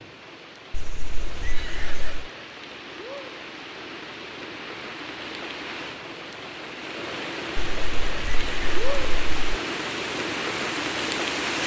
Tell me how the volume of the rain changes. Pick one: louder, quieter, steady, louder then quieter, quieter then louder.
louder.